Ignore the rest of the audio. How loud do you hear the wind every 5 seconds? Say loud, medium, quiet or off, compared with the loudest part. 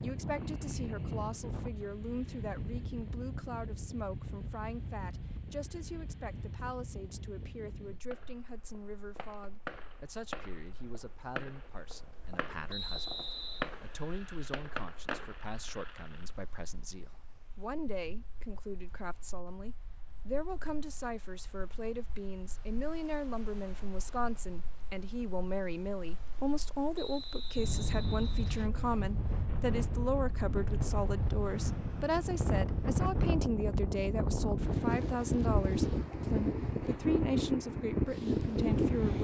medium, quiet, quiet, quiet, quiet, medium, loud, loud.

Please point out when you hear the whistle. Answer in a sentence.
You can hear the whistle from 12.7 to 13.7 s and from 26.9 to 28.7 s.